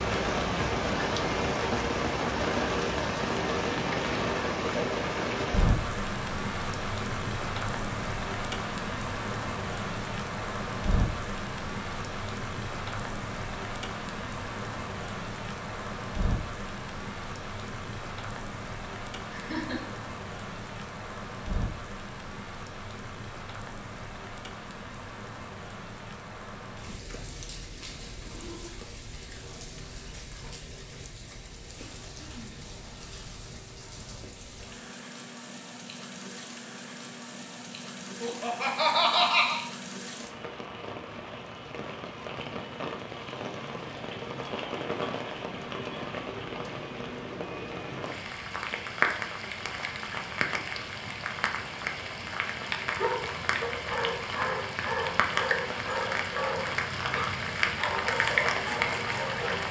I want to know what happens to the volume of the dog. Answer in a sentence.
The loudness of the dog stays about the same.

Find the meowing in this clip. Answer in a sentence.
You can't hear the meowing here.